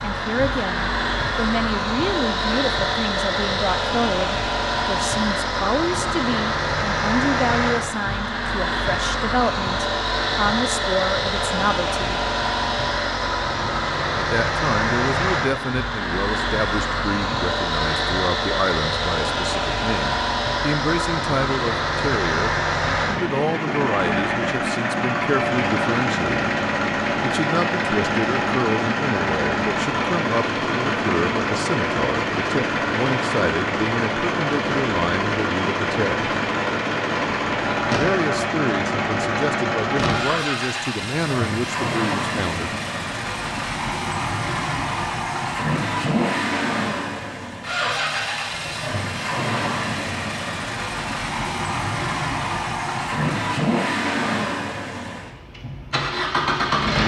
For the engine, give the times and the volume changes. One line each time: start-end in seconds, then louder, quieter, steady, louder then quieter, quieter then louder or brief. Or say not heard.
0.0-57.0 steady.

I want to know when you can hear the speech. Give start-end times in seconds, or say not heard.
0.1-12.2, 14.2-26.6, 27.2-36.2, 37.9-42.8.